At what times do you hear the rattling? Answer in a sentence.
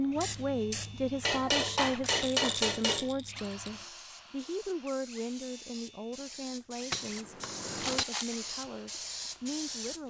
You can hear the rattling from 2.1 to 3.4 s and from 7.8 to 8.4 s.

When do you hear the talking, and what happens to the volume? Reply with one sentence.
The talking can be heard from 0.0 to 10.0 s, getting quieter.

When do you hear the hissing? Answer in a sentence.
The hissing can be heard from 0.0 to 10.0 s.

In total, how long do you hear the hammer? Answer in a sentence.
The hammer can be heard for 3 seconds in total.